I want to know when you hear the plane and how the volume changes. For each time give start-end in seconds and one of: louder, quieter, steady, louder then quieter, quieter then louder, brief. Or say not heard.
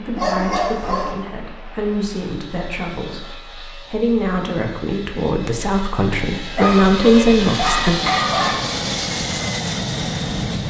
0.0-10.6 louder.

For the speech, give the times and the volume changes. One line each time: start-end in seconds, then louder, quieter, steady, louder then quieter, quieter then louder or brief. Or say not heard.
0.0-8.0 louder.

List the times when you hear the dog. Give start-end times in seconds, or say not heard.
0.1-1.1, 6.5-8.6.